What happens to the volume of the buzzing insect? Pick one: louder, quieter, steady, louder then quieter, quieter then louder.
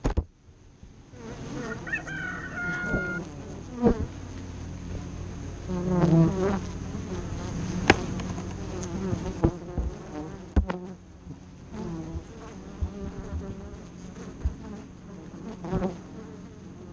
louder then quieter.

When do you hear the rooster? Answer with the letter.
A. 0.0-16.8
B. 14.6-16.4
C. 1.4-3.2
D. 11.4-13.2
C.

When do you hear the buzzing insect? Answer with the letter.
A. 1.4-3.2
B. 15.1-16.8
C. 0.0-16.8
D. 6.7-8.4
C.